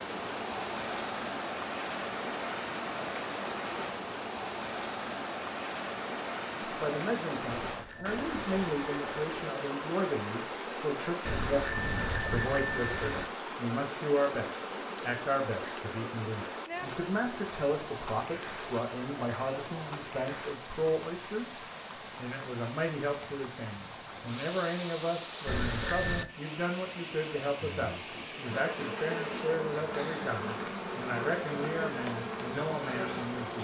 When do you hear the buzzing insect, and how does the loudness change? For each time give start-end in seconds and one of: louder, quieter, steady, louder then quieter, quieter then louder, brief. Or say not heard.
27.1-33.5 steady.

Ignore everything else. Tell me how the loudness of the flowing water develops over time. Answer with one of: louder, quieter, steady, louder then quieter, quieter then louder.
quieter.